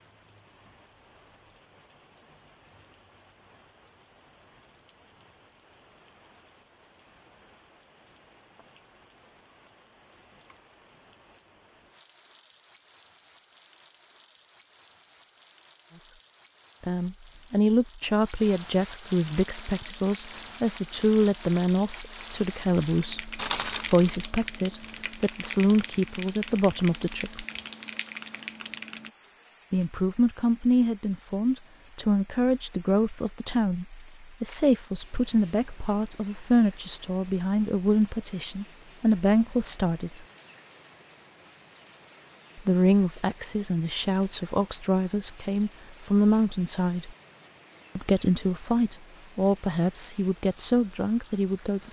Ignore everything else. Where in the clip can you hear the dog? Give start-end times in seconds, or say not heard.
not heard.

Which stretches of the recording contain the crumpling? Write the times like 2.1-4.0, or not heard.
23.4-24.1.